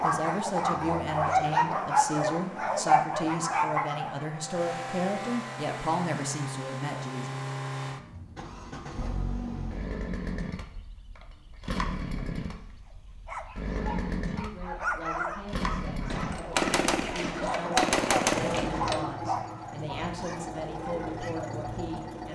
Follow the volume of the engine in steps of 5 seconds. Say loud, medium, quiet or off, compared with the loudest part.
medium, loud, loud, loud, loud.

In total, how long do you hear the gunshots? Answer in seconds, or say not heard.
3 s.